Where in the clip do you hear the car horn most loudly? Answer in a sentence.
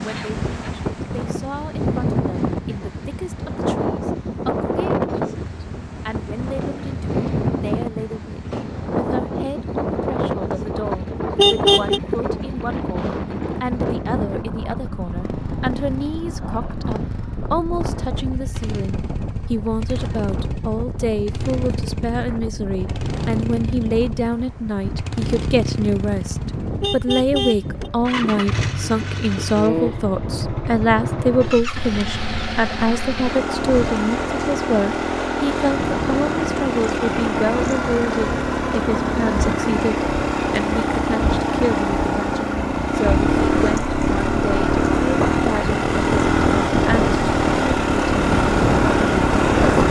The volume of the car horn peaks at 12 seconds.